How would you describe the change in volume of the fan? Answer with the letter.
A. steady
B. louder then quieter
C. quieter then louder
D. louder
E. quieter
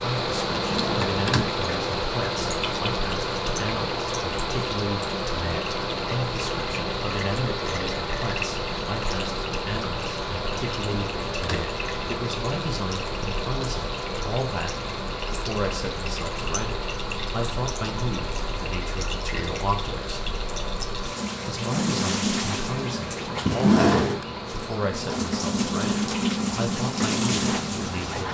E.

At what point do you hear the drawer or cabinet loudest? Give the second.
24 s.